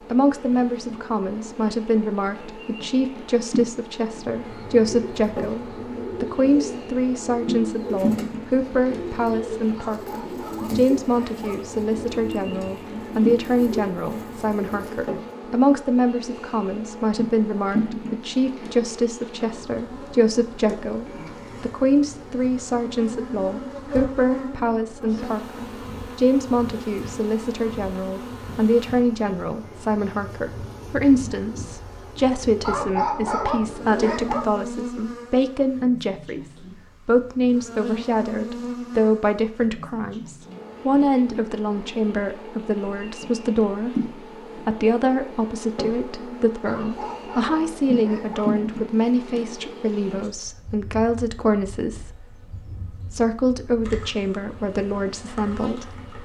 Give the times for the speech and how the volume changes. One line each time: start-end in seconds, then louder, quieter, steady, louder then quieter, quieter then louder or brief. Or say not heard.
0.1-56.0 steady.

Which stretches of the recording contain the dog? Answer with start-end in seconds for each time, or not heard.
9.8-11.8, 32.6-34.5, 46.6-48.5.